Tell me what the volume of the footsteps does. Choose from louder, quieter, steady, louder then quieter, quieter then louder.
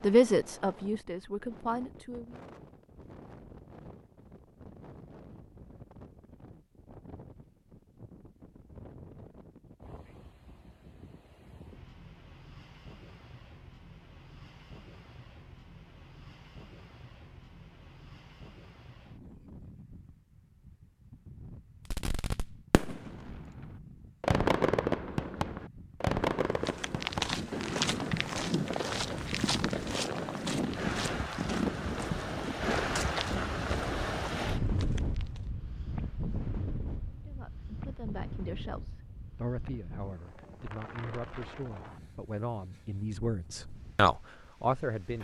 quieter.